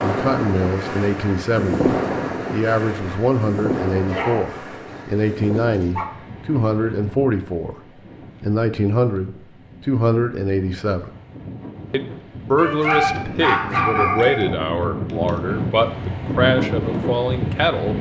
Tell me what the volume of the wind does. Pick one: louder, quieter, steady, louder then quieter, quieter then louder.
quieter then louder.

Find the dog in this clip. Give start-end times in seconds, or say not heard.
4.0-6.0, 12.6-14.4.